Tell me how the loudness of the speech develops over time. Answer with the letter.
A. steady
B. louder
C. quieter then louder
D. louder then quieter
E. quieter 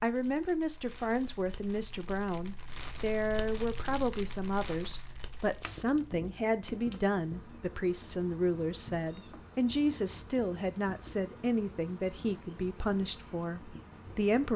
A.